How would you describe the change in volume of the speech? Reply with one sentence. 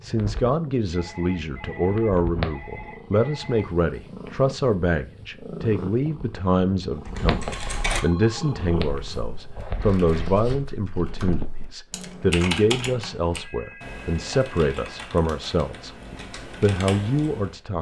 The volume of the speech stays about the same.